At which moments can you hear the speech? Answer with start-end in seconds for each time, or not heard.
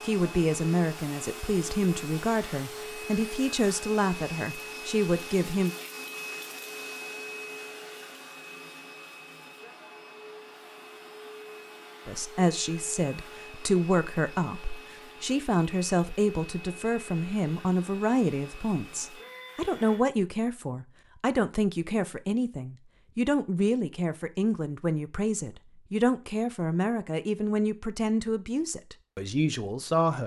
0.0-5.8, 12.1-30.2.